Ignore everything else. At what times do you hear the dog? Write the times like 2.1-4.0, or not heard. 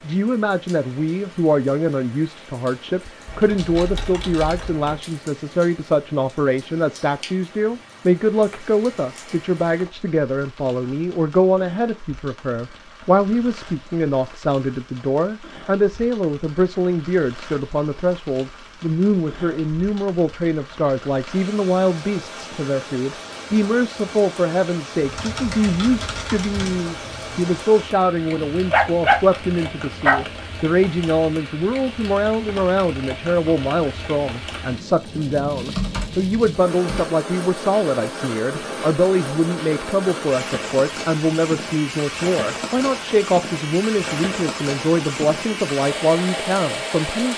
28.4-30.2.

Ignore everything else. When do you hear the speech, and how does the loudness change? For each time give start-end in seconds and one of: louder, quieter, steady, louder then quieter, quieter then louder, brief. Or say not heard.
0.0-47.3 steady.